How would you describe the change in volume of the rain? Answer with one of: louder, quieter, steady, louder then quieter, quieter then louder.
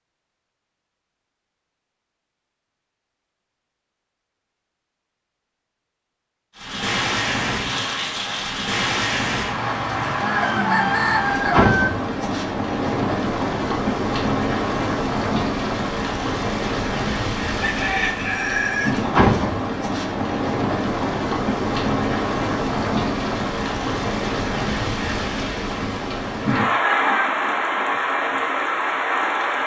steady.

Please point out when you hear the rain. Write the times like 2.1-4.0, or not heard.
6.5-29.6.